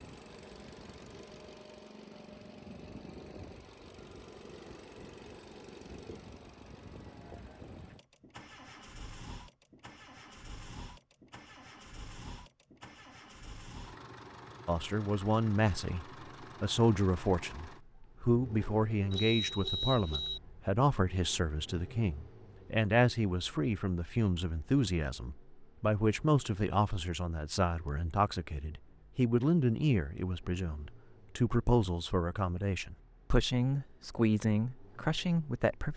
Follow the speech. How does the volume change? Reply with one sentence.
The volume of the speech stays about the same.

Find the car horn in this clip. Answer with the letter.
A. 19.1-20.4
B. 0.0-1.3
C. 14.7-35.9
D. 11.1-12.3
A.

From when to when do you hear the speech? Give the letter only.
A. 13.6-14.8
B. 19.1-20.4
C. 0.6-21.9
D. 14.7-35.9
D.